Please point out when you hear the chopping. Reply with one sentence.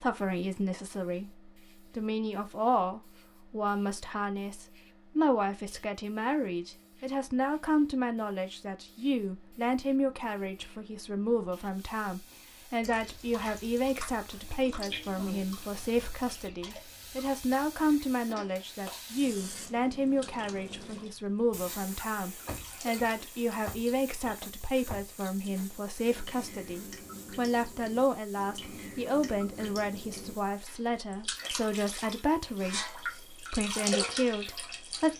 You can't hear the chopping here.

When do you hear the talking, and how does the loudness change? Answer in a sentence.
You can hear the talking from 0.0 to 35.1 s, at a steady volume.